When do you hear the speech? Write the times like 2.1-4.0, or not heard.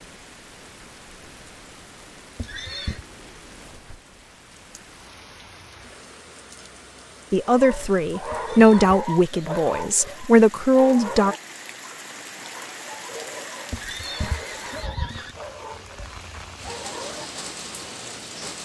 7.3-11.3.